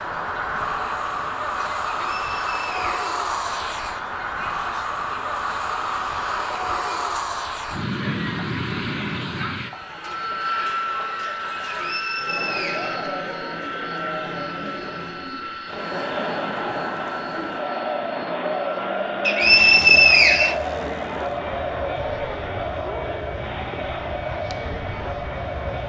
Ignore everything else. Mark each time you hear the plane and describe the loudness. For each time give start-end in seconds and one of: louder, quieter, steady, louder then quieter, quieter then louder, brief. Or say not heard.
0.0-25.8 quieter.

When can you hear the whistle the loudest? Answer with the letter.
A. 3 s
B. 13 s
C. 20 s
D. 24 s
C.